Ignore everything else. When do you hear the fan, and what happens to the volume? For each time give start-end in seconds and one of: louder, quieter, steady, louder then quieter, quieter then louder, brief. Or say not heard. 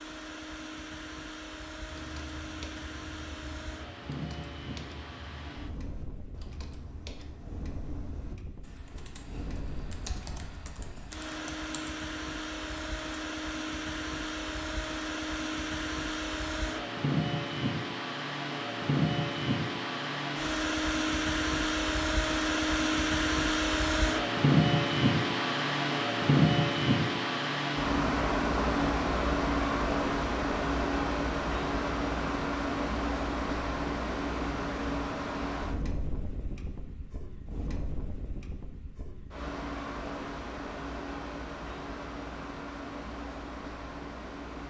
0.0-44.6 louder then quieter.